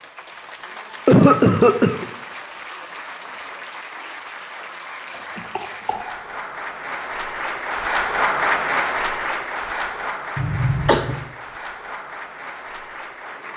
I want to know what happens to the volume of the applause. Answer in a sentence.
The volume of the applause goes up, then down.